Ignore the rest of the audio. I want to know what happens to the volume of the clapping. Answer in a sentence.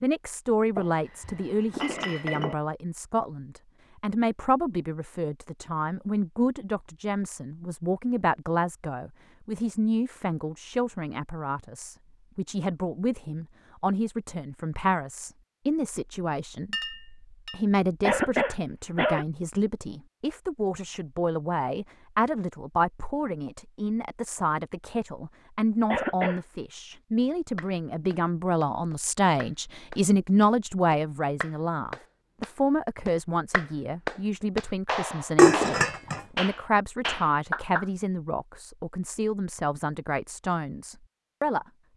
The loudness of the clapping goes up.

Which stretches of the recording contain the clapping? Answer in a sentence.
You can hear the clapping from 27.6 to 37.9 s.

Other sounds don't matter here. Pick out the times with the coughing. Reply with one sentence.
You can hear the coughing from 18.1 to 19.2 s and from 25.9 to 26.4 s.